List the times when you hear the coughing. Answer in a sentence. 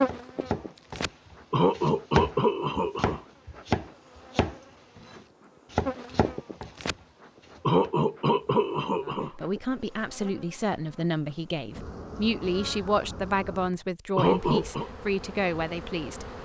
You can hear the coughing from 1.5 to 3.2 s, from 7.7 to 9.3 s and from 14.2 to 14.9 s.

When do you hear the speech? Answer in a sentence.
The speech can be heard from 9.1 to 16.4 s.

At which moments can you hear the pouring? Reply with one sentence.
You can't hear the pouring here.